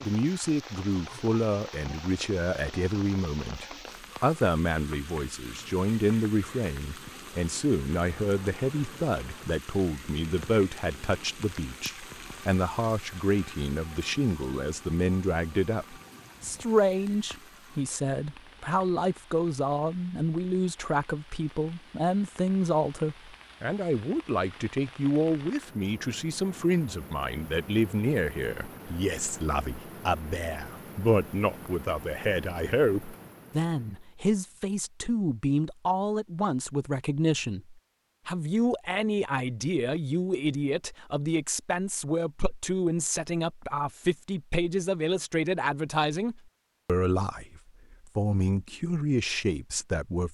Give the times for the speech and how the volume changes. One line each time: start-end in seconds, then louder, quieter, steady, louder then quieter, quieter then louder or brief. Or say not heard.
0.0-50.2 steady.